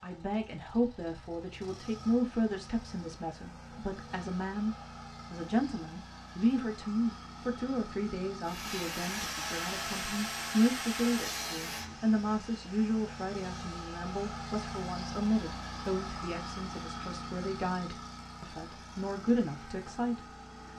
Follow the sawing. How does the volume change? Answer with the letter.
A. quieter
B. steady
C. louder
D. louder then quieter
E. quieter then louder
A.